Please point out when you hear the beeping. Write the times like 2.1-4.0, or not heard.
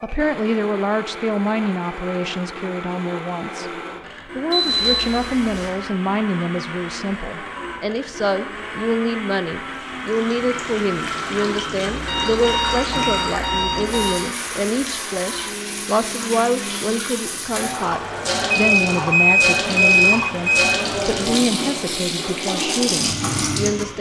4.5-5.7, 11.8-14.2, 18.5-20.6.